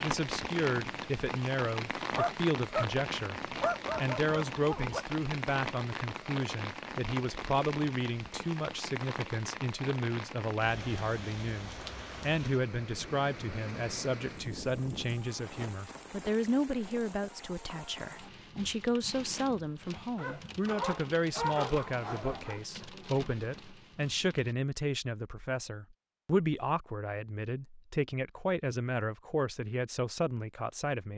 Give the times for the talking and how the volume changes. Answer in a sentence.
The talking can be heard from 0.0 to 31.1 s, at a steady volume.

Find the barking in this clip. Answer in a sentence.
You can hear the barking from 2.1 to 5.0 s and from 20.1 to 22.6 s.